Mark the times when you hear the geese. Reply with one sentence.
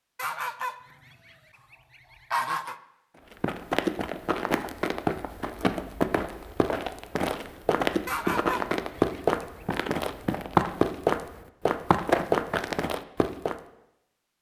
You can hear the geese from 0.1 to 2.8 s and from 8.1 to 9.4 s.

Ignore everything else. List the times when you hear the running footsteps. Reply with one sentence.
The running footsteps can be heard from 3.3 to 13.6 s.